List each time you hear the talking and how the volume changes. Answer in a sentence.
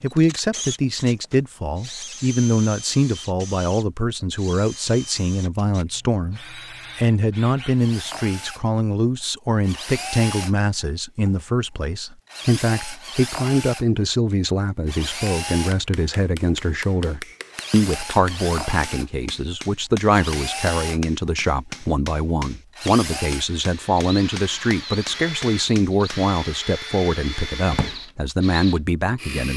You can hear the talking from 0.0 to 29.5 s, at a steady volume.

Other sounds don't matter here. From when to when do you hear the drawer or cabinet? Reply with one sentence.
You can hear the drawer or cabinet from 27.3 to 27.9 s.